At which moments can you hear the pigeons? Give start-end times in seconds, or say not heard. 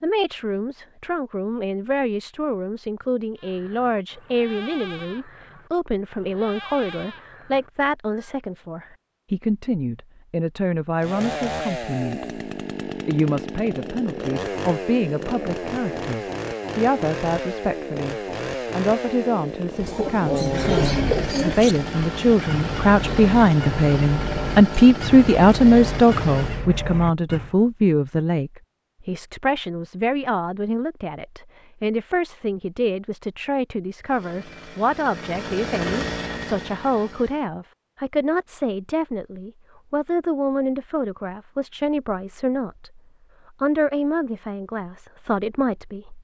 19.9-21.8.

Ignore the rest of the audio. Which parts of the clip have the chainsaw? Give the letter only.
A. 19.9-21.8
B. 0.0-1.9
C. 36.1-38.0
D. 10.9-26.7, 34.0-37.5
D.